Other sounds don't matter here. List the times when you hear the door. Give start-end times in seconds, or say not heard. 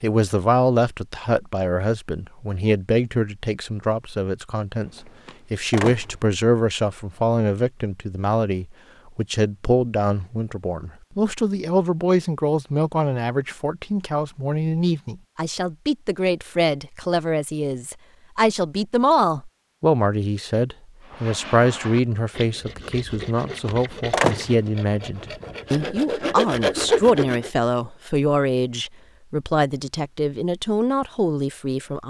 4.8-6.2, 23.2-24.6.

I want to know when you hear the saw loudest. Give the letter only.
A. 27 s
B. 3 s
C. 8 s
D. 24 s
A.